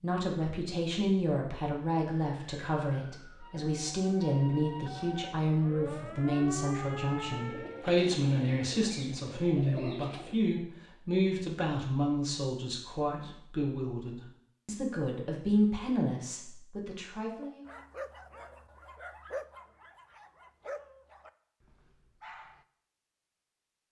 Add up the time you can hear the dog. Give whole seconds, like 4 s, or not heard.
5 s.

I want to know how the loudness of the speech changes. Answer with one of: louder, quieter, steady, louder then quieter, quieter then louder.
steady.